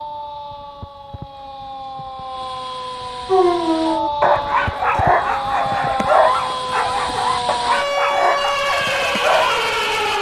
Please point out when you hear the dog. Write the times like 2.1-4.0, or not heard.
3.3-9.8.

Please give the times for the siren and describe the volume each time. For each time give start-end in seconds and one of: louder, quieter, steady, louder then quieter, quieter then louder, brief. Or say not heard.
0.0-10.1 louder.